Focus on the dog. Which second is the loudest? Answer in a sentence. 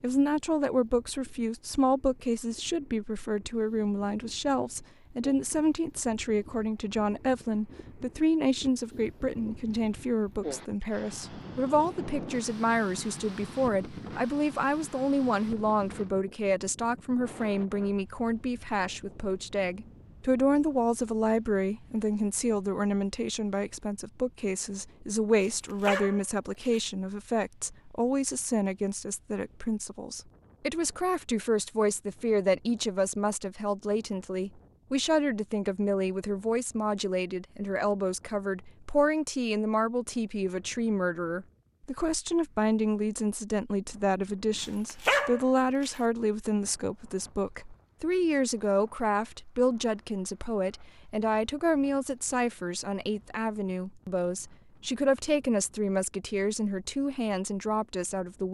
The loudest moment of the dog is at 45 seconds.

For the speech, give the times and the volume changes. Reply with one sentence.
You can hear the speech from 0.0 to 58.4 s, at a steady volume.